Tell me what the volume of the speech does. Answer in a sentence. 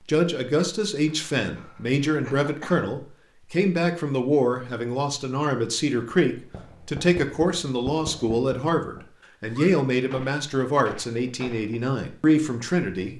The volume of the speech stays about the same.